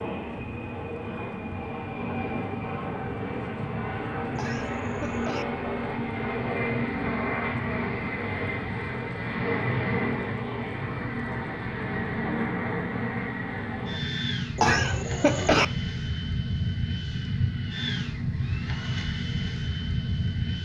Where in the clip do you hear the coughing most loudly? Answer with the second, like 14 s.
15 s.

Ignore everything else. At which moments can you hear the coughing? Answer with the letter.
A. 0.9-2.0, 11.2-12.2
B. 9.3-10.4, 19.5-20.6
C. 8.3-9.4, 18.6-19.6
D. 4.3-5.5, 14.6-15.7
D.